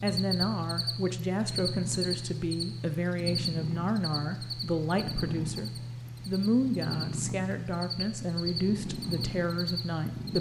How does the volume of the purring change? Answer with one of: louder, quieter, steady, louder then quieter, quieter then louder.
steady.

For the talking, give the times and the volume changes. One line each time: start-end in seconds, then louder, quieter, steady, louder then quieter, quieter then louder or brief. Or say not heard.
0.0-10.3 steady.